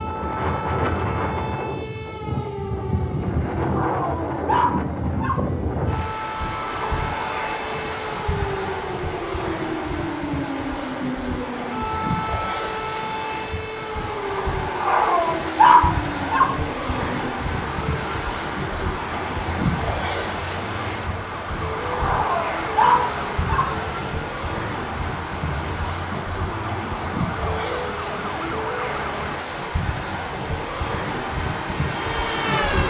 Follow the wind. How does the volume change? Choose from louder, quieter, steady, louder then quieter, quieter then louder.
steady.